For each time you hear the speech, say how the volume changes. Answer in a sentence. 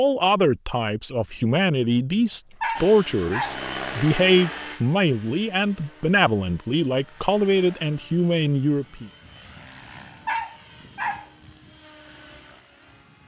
The speech can be heard from 0.0 to 9.1 s, at a steady volume.